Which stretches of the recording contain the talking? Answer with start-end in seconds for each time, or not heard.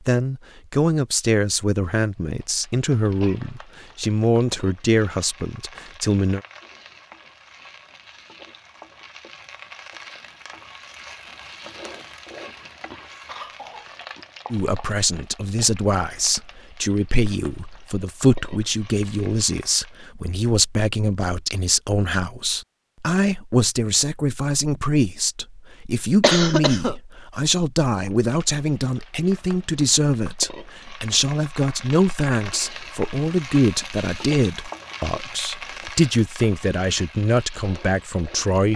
0.1-6.4, 14.5-38.7.